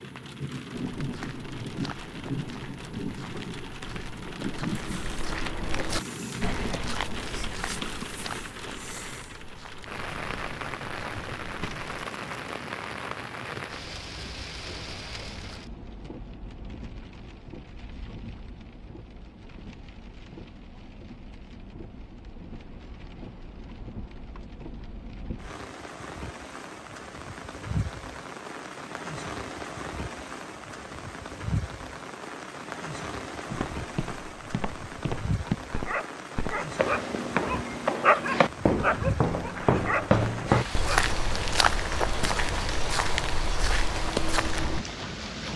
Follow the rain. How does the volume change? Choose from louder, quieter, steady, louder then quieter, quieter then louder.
quieter then louder.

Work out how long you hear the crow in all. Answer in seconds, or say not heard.
not heard.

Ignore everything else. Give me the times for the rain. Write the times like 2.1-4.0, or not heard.
0.0-45.5.